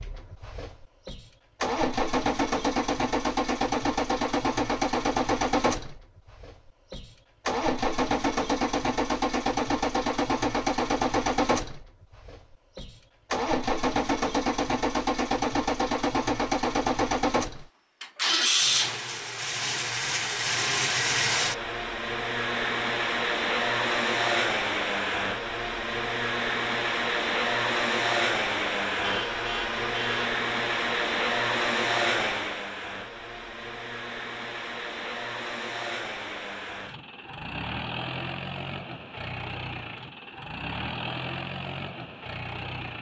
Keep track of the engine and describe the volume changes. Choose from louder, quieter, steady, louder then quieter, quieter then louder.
quieter.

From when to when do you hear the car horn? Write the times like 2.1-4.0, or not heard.
29.0-30.3.